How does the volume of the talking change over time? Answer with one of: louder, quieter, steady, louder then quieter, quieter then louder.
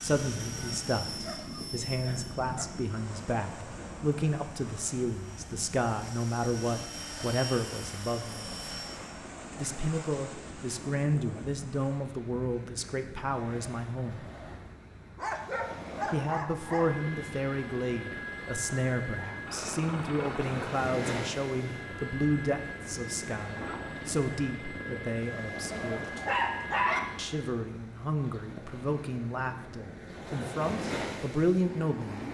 steady.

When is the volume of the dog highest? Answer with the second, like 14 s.
27 s.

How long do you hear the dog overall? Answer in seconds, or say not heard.
4 s.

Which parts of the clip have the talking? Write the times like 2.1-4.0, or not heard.
0.0-8.5, 9.6-14.2, 16.1-26.1, 27.1-32.2.